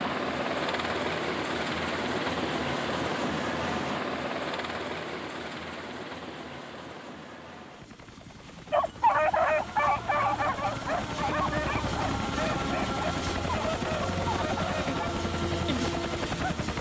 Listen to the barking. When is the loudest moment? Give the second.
9 s.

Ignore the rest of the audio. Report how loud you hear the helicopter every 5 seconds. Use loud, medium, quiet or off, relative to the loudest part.
loud, medium, loud, loud.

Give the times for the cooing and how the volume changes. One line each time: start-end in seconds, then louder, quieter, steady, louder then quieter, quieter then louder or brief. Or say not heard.
not heard.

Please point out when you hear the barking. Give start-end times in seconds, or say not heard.
8.7-15.1.